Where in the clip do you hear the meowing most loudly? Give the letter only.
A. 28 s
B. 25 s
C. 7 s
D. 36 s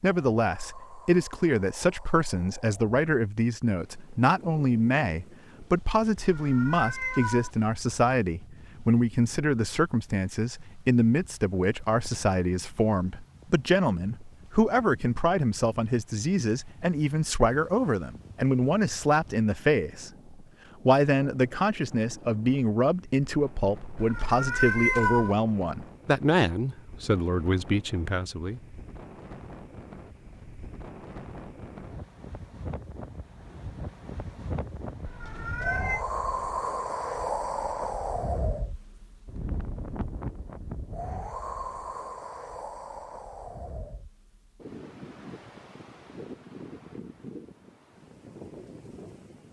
B.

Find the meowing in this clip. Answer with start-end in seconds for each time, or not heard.
6.2-7.5, 23.9-25.4, 35.0-36.0.